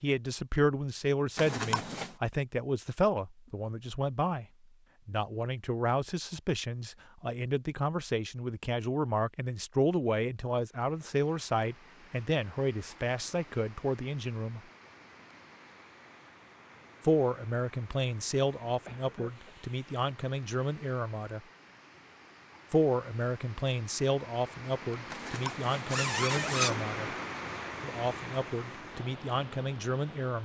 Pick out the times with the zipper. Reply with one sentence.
You can hear the zipper from 1.4 to 2.1 s and from 25.1 to 26.8 s.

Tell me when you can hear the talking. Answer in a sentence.
You can hear the talking from 0.0 to 4.5 s, from 5.0 to 14.6 s, from 17.0 to 21.4 s, from 22.7 to 27.1 s and from 27.8 to 30.4 s.